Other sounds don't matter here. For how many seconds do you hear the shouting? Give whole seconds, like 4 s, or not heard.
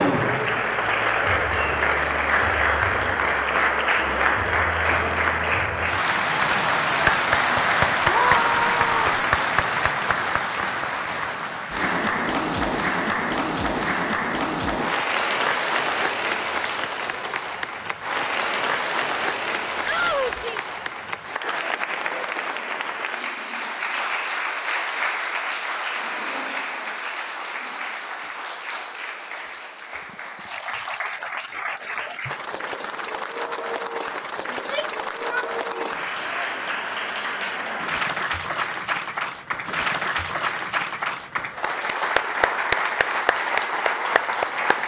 3 s.